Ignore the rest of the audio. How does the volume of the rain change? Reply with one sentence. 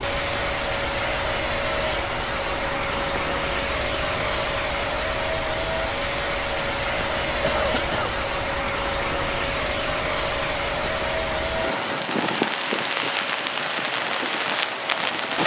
The loudness of the rain goes up.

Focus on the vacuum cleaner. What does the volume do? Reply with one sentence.
The loudness of the vacuum cleaner goes down.